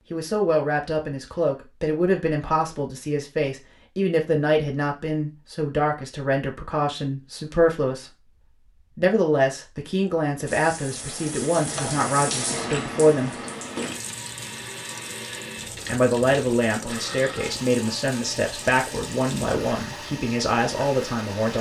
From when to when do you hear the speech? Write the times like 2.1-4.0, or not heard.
0.1-13.4, 15.8-21.5.